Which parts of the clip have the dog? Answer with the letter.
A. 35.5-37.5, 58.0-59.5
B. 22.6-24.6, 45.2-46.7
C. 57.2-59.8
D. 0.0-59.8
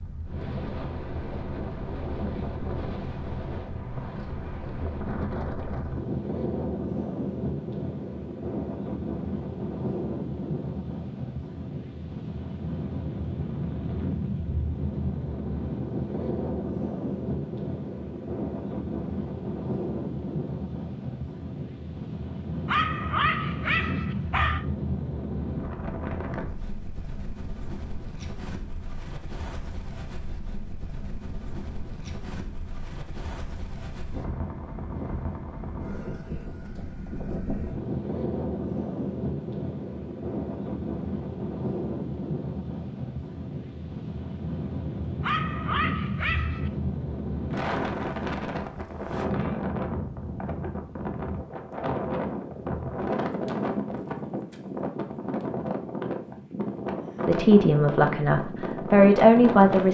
B.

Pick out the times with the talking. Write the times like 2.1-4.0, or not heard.
57.2-59.8.